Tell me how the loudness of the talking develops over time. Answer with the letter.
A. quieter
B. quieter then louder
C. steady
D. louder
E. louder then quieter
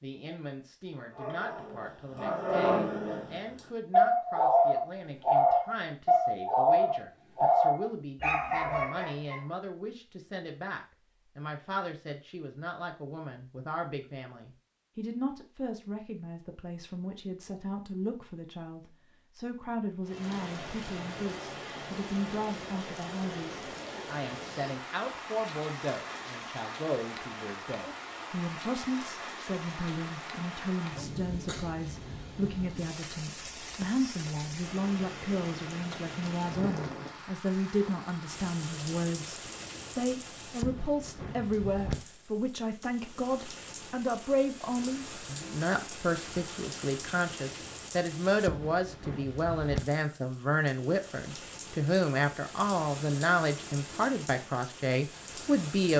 D.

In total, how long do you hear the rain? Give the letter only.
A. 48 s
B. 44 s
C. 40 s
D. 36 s
D.